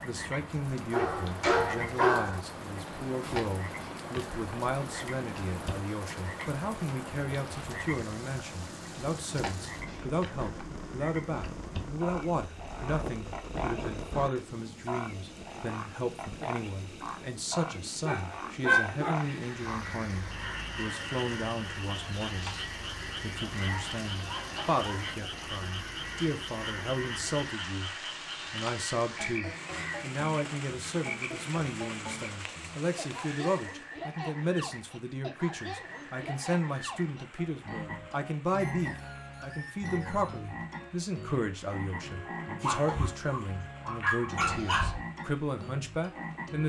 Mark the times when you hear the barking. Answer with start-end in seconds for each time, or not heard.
0.9-2.4, 18.0-19.2, 23.4-25.2, 42.6-45.0.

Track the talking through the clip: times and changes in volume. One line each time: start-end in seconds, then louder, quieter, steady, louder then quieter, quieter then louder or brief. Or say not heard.
0.0-27.9 steady
28.5-46.6 steady.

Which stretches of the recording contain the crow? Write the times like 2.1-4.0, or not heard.
19.1-30.1.